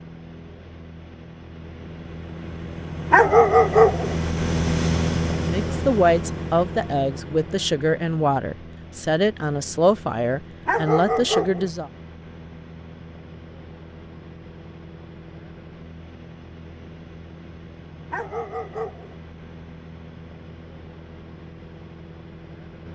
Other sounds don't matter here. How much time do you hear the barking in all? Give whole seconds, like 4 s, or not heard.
3 s.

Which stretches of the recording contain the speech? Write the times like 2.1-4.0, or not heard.
5.5-11.9.